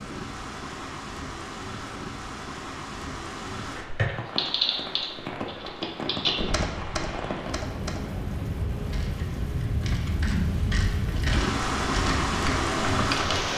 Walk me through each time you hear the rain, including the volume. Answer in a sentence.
You can hear the rain from 0.0 to 13.5 s, getting louder.